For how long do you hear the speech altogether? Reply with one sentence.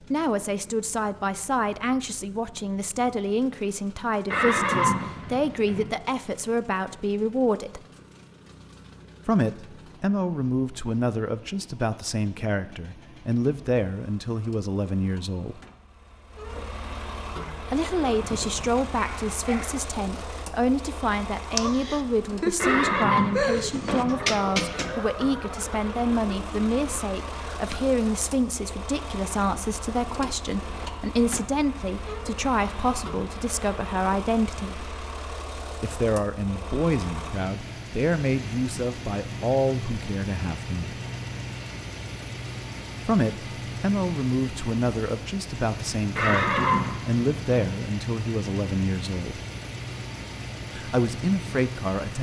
The speech can be heard for 44 seconds in total.